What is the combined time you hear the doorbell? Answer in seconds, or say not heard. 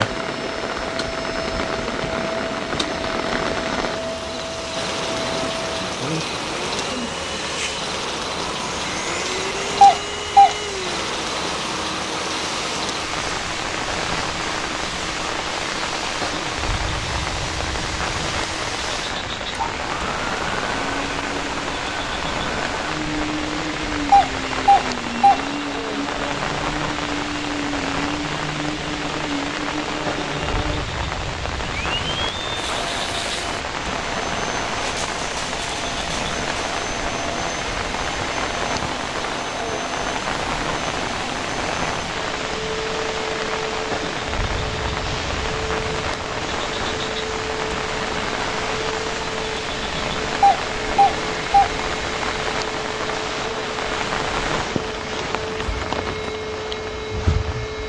3 s.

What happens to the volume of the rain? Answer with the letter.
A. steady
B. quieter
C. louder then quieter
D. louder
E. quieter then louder
A.